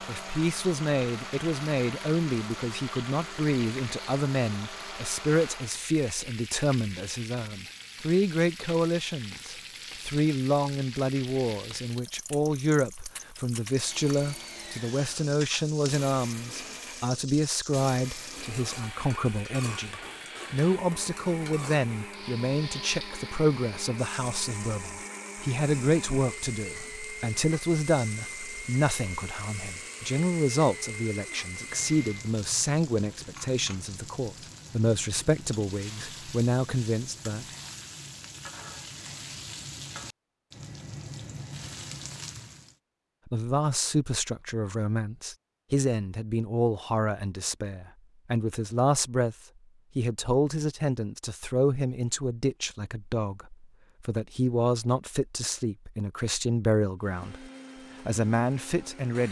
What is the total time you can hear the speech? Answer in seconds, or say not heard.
53 s.